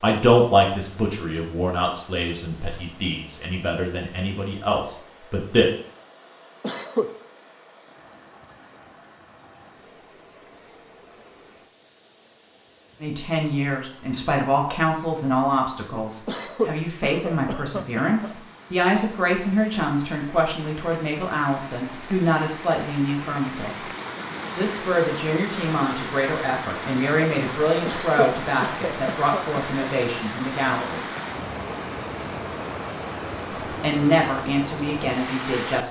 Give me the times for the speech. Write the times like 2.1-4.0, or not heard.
0.0-5.7, 13.0-23.7, 24.6-31.1, 33.8-35.8.